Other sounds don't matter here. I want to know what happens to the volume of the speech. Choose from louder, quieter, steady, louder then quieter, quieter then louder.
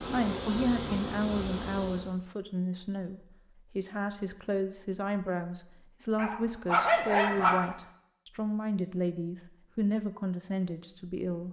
steady.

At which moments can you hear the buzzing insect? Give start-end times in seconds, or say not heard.
0.0-2.1.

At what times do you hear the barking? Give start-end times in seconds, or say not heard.
6.2-7.8.